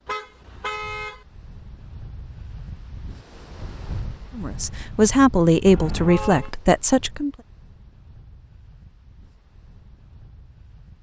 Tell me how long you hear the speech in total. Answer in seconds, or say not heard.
3 s.